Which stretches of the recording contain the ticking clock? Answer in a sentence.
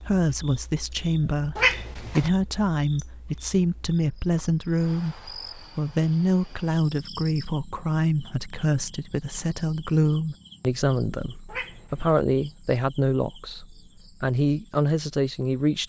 The ticking clock can't be heard in this clip.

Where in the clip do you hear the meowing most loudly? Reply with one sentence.
The loudest moment of the meowing is at 2 seconds.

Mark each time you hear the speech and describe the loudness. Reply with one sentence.
You can hear the speech from 0.1 to 15.8 s, at a steady volume.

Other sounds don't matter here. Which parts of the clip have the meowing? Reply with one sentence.
The meowing can be heard from 1.6 to 2.3 s and from 11.4 to 12.2 s.